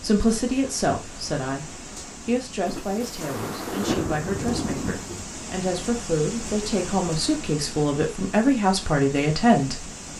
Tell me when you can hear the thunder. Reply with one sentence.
The thunder can be heard from 2.6 to 5.2 s.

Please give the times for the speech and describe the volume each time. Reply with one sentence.
You can hear the speech briefly from 0.0 to 1.6 s; and from 2.2 to 9.9 s, getting louder.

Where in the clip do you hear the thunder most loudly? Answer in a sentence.
The loudest moment of the thunder is at 4 seconds.